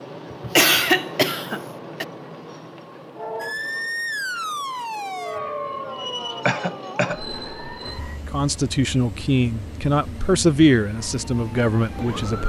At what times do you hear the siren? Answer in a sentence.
The siren can be heard from 3.1 to 8.2 s and from 10.9 to 12.4 s.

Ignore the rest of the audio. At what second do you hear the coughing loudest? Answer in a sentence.
The loudest moment of the coughing is at 1 second.